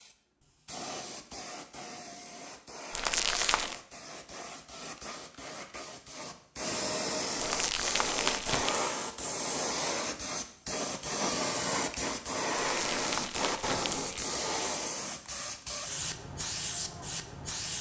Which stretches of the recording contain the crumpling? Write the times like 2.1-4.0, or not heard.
2.9-3.8, 7.4-8.8, 12.6-14.2.